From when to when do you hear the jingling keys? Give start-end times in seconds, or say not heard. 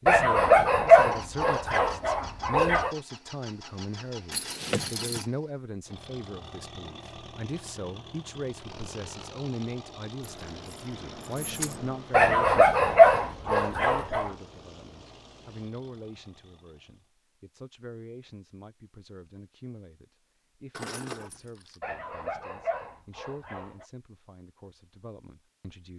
4.3-5.2, 10.2-12.0, 20.7-21.8.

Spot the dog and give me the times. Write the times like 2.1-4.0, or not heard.
0.1-3.0, 12.1-14.3, 21.8-23.9.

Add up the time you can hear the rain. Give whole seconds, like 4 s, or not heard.
not heard.